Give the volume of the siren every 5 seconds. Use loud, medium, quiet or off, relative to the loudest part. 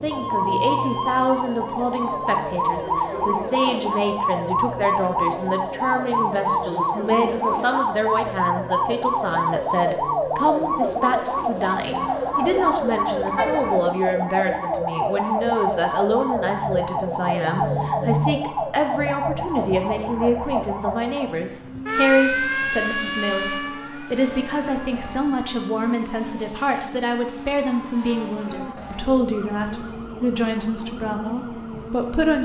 loud, loud, loud, loud, loud, quiet, quiet.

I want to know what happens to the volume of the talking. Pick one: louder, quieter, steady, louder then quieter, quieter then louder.
steady.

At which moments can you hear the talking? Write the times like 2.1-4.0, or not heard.
0.0-32.4.